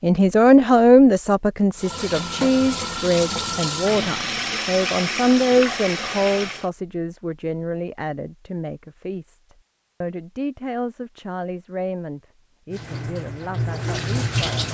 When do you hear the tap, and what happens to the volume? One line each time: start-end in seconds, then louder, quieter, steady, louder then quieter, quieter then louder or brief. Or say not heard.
1.8-6.7 steady
12.7-14.6 brief.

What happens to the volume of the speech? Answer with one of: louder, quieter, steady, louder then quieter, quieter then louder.
quieter.